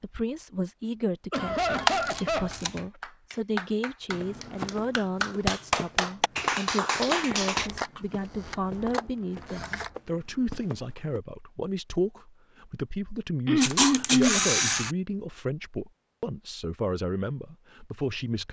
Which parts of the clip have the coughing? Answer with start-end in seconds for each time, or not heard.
1.3-2.6, 7.2-8.1, 13.4-14.4.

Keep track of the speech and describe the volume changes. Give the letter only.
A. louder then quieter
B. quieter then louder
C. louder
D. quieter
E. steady
E.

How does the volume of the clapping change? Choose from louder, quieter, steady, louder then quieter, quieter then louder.
quieter then louder.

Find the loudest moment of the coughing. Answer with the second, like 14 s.
14 s.